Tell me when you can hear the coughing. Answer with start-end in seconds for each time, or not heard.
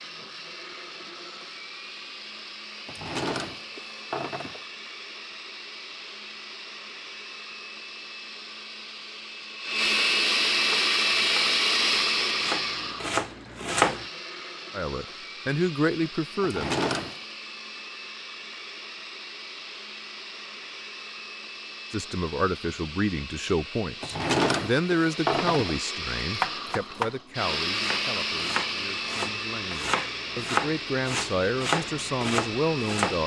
not heard.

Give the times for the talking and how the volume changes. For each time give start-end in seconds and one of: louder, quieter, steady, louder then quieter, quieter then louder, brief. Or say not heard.
14.7-16.8 brief
21.9-33.2 quieter then louder.